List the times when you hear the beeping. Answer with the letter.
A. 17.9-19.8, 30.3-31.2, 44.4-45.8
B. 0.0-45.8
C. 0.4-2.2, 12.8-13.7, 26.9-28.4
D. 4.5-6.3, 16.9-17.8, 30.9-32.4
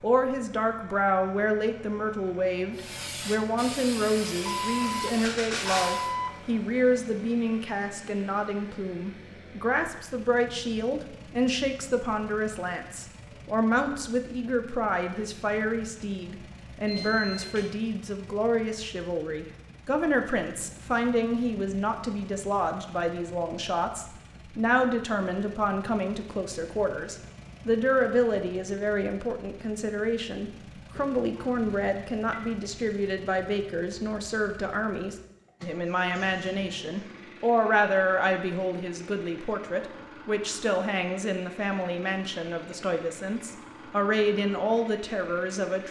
D.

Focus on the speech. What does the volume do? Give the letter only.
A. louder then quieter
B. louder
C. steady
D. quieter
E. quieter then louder
C.